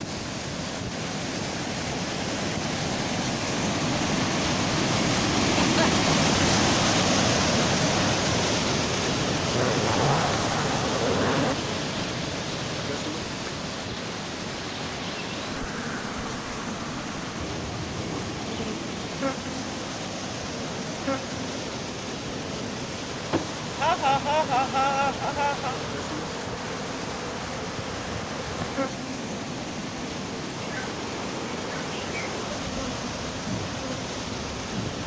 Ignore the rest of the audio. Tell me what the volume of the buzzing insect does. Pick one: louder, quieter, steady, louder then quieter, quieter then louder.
steady.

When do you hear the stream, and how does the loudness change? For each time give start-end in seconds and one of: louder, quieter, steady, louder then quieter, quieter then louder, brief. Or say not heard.
0.0-35.0 quieter.